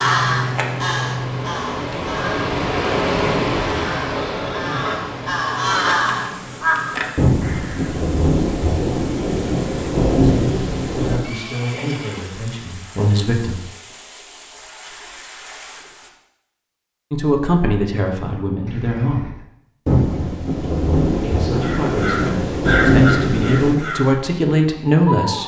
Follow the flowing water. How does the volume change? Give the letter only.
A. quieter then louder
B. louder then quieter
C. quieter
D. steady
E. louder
C.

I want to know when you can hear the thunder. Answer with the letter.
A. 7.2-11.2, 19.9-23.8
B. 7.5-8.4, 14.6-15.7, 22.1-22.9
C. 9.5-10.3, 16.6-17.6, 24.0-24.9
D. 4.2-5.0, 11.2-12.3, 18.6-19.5
A.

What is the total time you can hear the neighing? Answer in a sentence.
The neighing can be heard for 3 seconds in total.